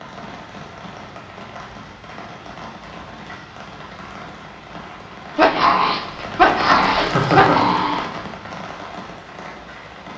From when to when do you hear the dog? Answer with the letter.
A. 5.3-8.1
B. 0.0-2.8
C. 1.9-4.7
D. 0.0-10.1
A.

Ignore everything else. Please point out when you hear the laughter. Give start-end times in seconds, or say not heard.
7.0-8.0.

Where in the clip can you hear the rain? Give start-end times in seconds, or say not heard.
0.0-10.1.